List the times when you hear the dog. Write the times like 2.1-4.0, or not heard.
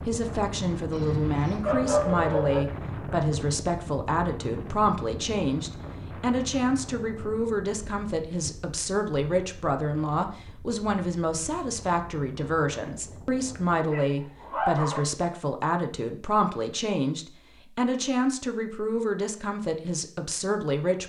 0.9-2.6, 13.8-15.1.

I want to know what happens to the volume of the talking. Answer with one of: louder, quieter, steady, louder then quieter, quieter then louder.
steady.